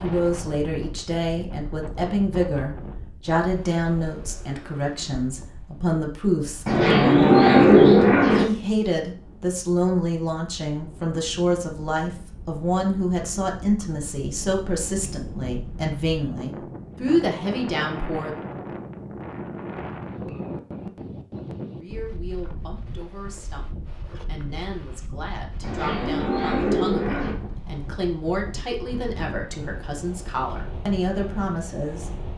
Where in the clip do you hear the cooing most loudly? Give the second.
8 s.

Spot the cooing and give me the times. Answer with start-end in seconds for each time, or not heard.
6.7-8.4, 25.6-27.4.